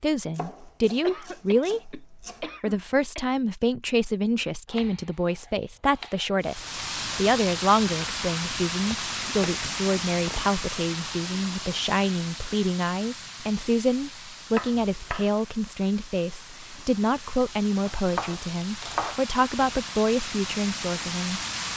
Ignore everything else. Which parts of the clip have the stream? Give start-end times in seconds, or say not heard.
6.4-21.7.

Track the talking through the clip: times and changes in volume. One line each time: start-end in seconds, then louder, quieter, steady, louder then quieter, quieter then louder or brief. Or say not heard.
0.0-21.4 steady.